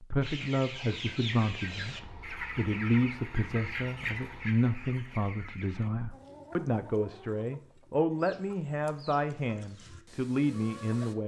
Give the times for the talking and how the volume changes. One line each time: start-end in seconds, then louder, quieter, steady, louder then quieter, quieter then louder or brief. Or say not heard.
0.0-11.2 steady.